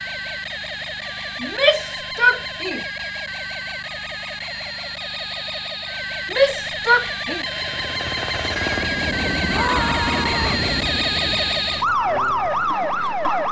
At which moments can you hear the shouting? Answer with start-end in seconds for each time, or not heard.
1.4-2.8, 6.3-7.5, 9.4-10.7.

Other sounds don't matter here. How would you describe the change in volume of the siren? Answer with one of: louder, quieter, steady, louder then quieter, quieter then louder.
louder.